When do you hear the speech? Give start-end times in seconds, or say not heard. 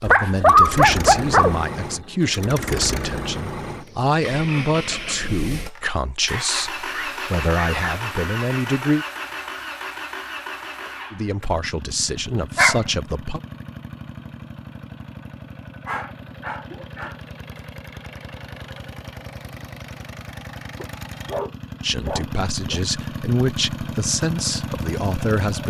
0.0-9.1, 11.1-13.4, 21.8-25.6.